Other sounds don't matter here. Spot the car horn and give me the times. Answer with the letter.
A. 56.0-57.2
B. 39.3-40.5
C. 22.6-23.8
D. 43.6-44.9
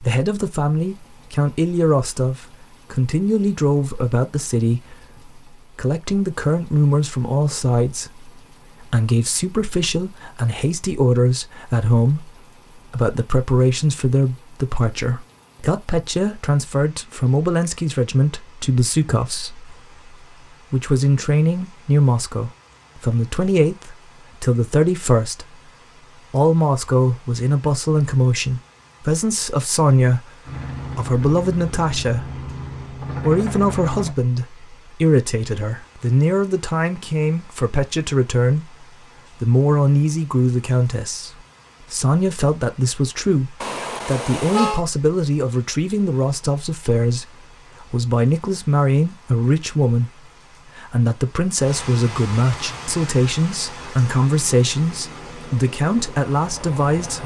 D.